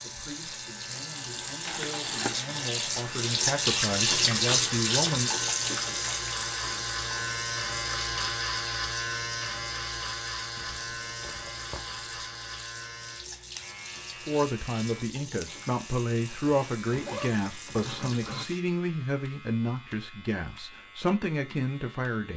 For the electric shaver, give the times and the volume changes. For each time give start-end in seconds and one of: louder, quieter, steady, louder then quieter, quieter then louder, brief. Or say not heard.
0.0-22.3 louder then quieter.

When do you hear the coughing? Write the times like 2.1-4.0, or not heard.
not heard.